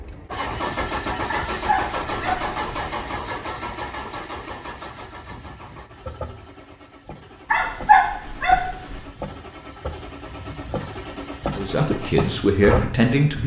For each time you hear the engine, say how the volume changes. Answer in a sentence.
You can hear the engine from 0.0 to 13.4 s, getting quieter then louder.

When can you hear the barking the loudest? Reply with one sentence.
The volume of the barking peaks at 8 seconds.